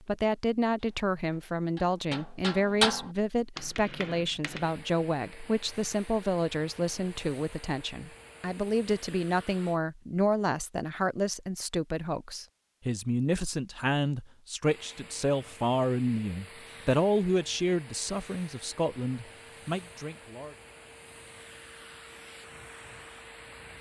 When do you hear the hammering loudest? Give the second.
3 s.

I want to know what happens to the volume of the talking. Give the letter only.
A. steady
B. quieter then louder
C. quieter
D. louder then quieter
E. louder
A.